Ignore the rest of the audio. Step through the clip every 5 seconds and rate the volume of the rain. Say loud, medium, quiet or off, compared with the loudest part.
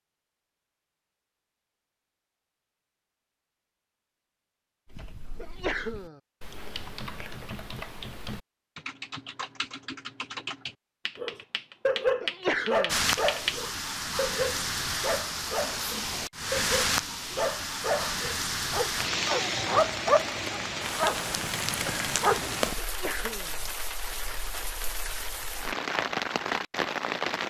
off, off, loud, loud, loud, loud.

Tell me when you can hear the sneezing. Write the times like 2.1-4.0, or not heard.
5.3-6.2, 12.2-13.0, 22.8-23.6.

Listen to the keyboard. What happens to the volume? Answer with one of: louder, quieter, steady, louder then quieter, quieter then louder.
louder.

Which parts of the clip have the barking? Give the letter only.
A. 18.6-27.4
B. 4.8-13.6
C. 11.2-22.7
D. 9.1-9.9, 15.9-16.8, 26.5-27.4
C.